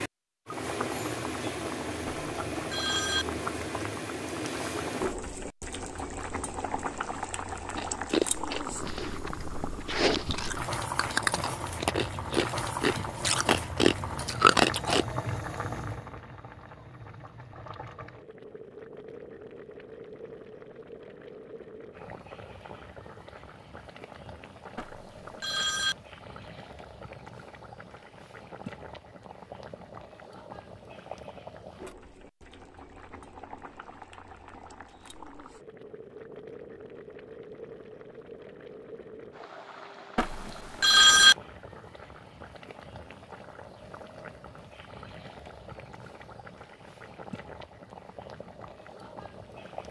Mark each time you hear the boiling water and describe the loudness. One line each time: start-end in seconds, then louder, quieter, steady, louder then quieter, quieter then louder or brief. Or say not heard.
0.0-49.8 quieter.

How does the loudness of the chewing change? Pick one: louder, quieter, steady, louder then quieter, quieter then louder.
louder.